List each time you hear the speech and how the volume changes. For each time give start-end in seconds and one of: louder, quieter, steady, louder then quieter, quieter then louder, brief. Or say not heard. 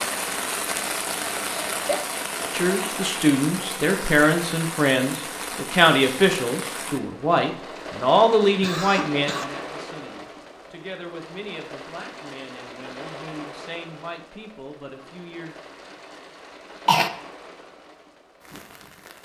2.5-15.6 quieter.